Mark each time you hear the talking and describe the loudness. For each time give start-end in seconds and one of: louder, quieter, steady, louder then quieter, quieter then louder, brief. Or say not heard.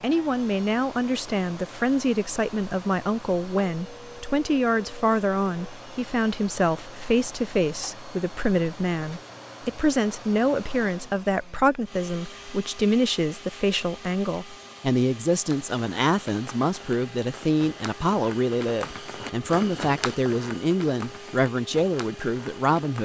0.0-23.0 steady.